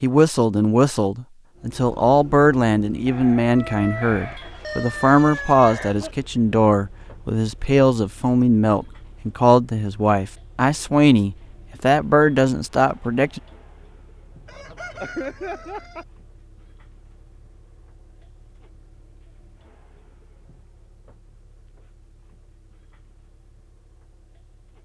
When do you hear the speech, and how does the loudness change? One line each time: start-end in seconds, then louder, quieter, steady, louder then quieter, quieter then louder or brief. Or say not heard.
0.0-13.4 steady.